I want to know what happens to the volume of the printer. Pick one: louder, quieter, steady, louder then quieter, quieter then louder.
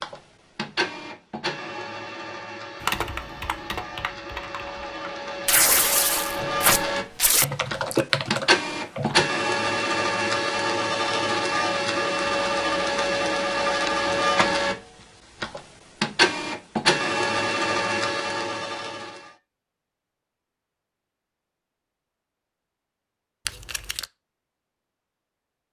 louder.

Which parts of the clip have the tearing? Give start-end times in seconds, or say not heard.
5.5-7.5, 23.4-24.1.